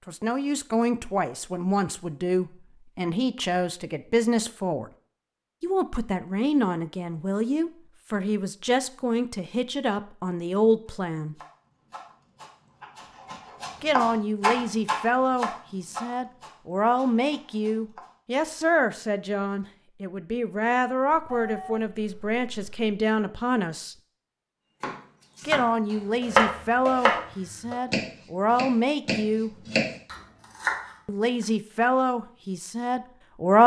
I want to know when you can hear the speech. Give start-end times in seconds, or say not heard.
0.1-4.9, 5.6-11.3, 13.8-23.9, 25.4-29.5, 31.1-33.6.